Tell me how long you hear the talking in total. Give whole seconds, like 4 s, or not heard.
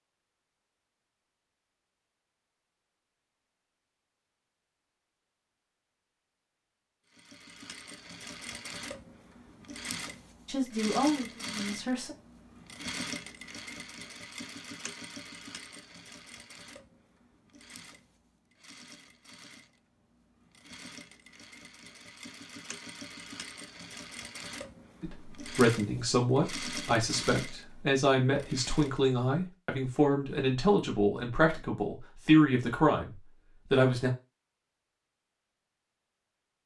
11 s.